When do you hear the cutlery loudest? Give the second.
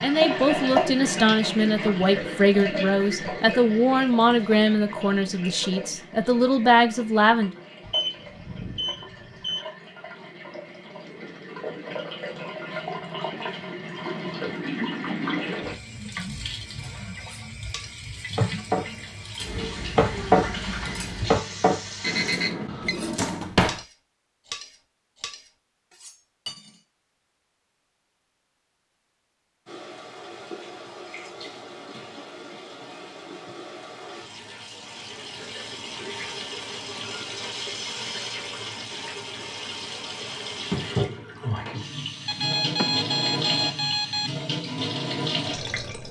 20 s.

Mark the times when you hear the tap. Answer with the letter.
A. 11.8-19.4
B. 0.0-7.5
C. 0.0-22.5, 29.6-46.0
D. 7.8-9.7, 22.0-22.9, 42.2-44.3
C.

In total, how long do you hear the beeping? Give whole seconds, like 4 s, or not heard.
5 s.